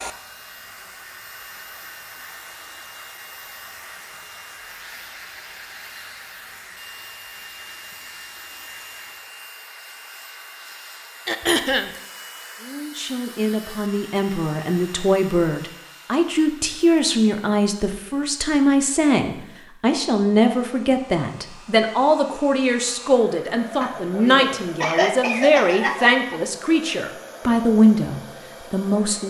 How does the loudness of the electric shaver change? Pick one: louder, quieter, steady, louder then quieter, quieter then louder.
steady.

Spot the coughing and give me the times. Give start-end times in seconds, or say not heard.
11.2-11.9, 23.7-26.4.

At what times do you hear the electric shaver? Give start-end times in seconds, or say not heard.
0.1-9.2.